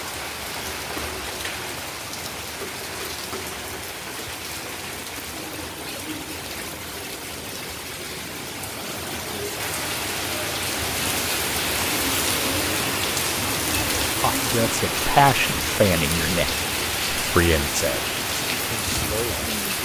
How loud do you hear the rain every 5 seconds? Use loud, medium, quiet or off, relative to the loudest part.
medium, medium, loud, loud.